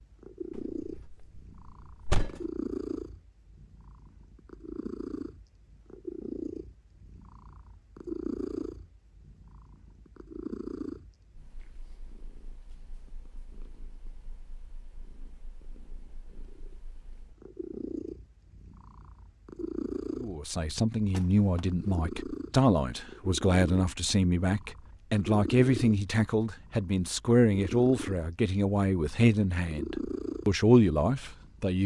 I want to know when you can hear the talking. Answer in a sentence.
The talking can be heard from 20.1 to 31.8 s.